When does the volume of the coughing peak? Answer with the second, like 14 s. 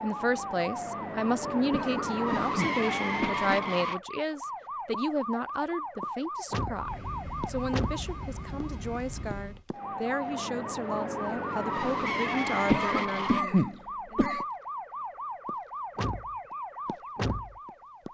13 s.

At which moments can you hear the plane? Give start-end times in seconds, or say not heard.
6.7-9.7.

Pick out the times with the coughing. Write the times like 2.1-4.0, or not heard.
1.7-3.5, 12.7-14.4.